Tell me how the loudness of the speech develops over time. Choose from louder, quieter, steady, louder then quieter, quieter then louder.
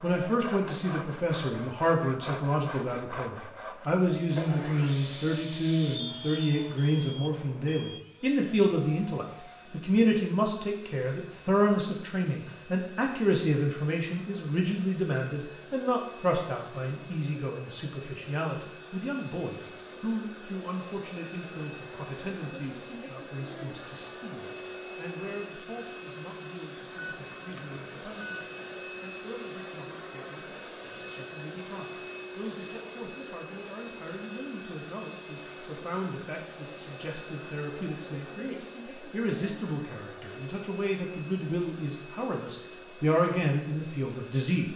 quieter then louder.